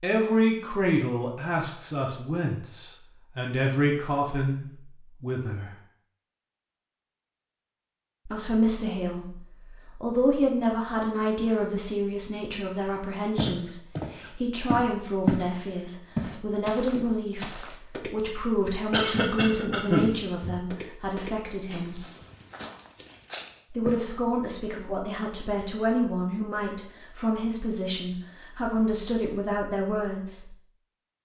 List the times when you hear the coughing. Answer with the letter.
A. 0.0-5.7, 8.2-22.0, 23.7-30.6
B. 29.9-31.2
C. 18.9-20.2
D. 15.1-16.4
C.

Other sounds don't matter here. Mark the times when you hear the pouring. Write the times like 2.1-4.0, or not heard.
not heard.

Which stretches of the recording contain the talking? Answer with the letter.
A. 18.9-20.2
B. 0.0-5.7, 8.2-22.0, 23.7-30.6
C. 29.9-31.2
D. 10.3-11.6
B.